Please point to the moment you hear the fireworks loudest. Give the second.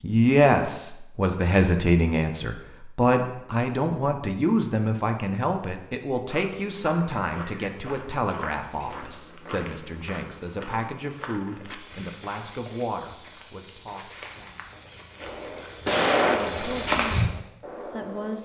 16 s.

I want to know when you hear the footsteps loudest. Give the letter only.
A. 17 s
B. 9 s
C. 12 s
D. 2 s
A.